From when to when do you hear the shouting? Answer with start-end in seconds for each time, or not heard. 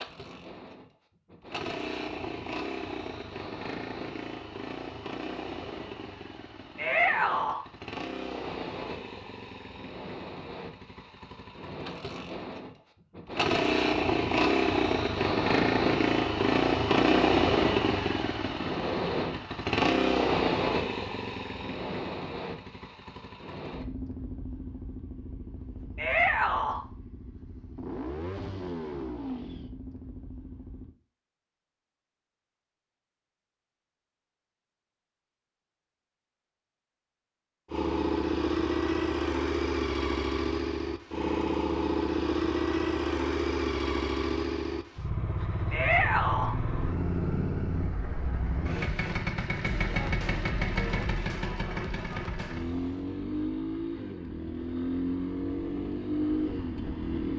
6.8-7.6, 25.9-26.8, 45.7-46.5.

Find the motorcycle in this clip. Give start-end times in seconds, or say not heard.
0.0-30.9, 37.7-57.3.